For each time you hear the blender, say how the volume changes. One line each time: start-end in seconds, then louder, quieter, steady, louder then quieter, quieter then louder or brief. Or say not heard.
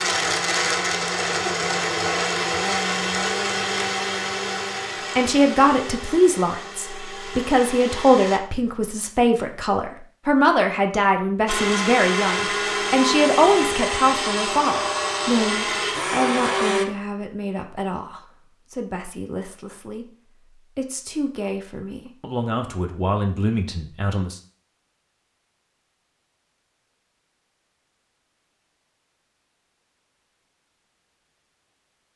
0.0-8.4 quieter
11.4-16.9 steady.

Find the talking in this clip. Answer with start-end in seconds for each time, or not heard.
5.2-24.4.